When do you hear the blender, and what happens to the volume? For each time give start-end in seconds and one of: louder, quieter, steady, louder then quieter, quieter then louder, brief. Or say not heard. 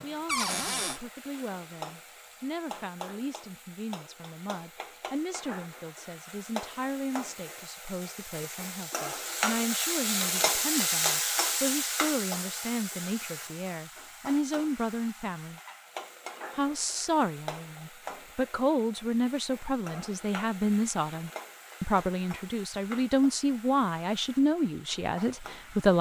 not heard.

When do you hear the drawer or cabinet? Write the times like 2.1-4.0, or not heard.
0.2-1.0.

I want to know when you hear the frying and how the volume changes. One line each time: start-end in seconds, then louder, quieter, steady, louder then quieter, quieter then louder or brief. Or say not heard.
0.0-25.9 louder then quieter.